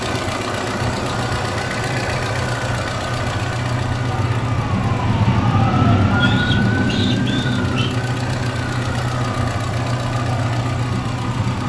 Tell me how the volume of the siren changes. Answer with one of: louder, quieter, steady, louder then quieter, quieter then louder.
louder then quieter.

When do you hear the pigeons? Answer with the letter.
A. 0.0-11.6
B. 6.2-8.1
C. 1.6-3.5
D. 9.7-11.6
B.